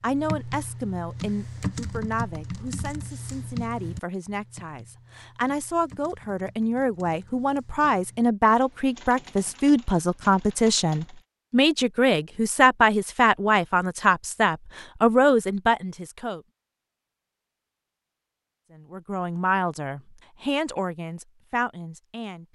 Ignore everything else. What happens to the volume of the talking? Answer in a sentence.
The loudness of the talking goes up, then down.